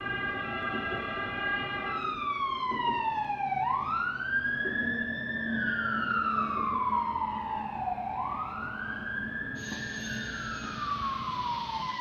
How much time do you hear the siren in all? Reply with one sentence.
The siren can be heard for 12 seconds in total.